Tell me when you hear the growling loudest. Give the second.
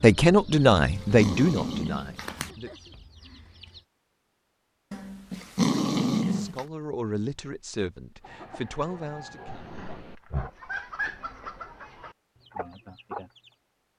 6 s.